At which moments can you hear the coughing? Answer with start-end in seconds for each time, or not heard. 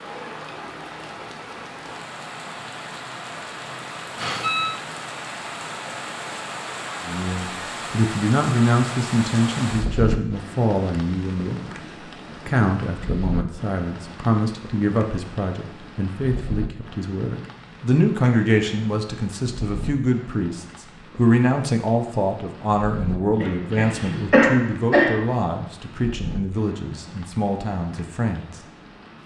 23.4-25.2.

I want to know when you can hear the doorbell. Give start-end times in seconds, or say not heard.
4.2-4.8.